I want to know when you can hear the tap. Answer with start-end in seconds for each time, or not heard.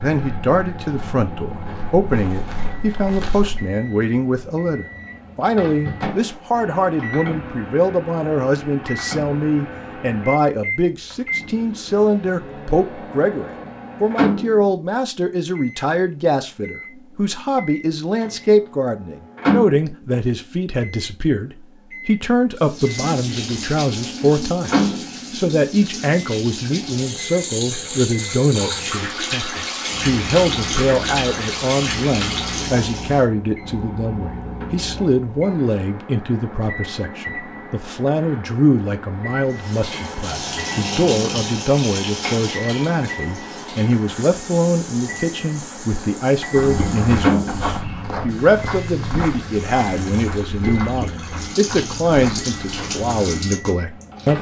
22.6-33.2, 39.5-54.3.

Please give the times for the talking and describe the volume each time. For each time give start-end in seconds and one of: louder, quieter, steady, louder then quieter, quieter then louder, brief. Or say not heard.
0.0-54.3 steady.